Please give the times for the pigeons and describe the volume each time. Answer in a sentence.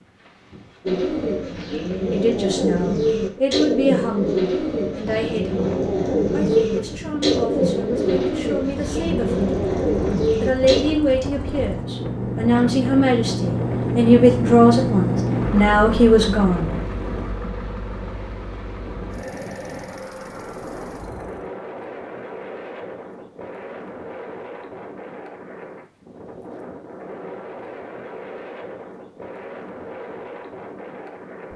The pigeons can be heard from 0.8 to 10.8 s, at a steady volume.